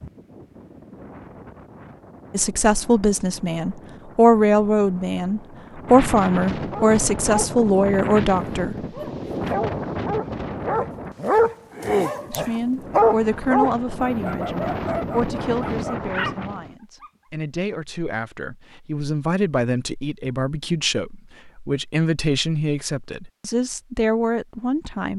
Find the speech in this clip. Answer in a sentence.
The speech can be heard from 2.3 to 8.8 s and from 12.3 to 25.1 s.